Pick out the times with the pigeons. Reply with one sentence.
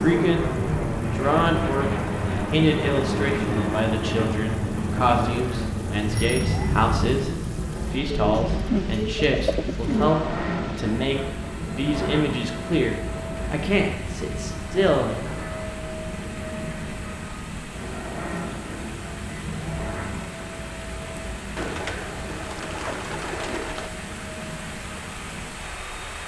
You can hear the pigeons from 8.2 to 10.1 s and from 21.6 to 23.9 s.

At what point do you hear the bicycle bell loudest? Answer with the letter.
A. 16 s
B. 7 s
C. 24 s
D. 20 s
B.